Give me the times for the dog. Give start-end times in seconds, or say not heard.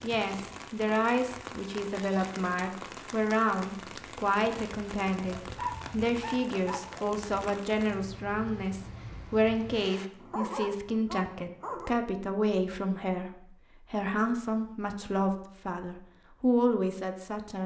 5.3-7.1, 10.2-11.9.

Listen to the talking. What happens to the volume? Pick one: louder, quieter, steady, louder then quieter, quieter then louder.
steady.